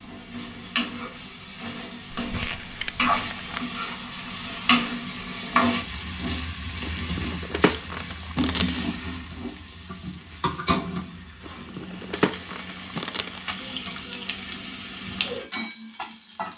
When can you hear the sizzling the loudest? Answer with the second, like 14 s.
5 s.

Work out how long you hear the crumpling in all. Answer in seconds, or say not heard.
5 s.